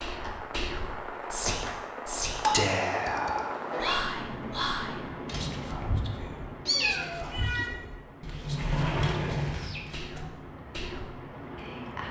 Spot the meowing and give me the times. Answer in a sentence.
You can hear the meowing from 2.4 to 4.0 s and from 6.7 to 7.7 s.